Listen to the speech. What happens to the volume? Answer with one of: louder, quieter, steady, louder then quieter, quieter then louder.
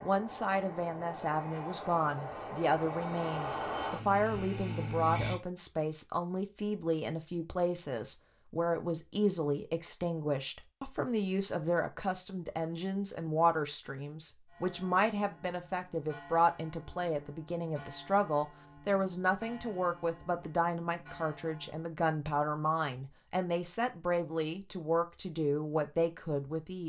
steady.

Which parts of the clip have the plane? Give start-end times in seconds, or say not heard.
0.0-5.4.